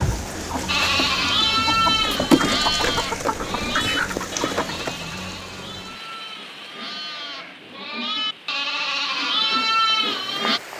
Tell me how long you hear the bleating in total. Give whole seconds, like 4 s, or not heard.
10 s.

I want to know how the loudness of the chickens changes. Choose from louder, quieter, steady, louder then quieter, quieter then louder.
louder then quieter.